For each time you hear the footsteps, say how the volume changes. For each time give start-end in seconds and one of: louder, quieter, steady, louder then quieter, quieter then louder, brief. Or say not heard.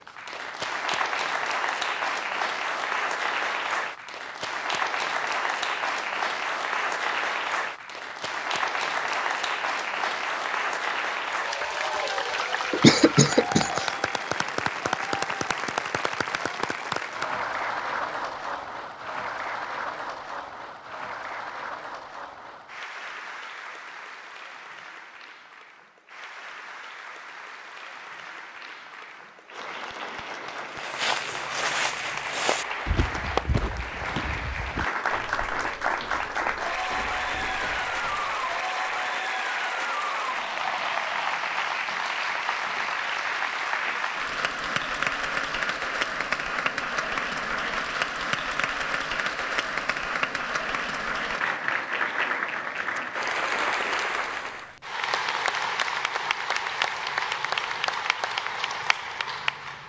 30.6-39.0 quieter.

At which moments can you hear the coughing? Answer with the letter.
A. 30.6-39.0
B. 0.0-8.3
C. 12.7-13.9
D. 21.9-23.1
C.